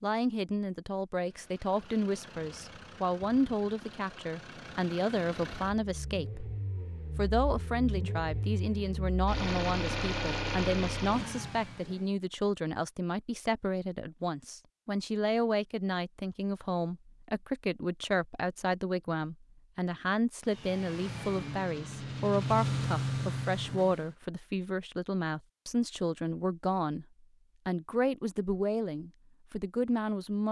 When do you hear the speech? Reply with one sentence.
The speech can be heard from 0.0 to 6.5 s, from 7.2 to 27.1 s and from 27.6 to 30.4 s.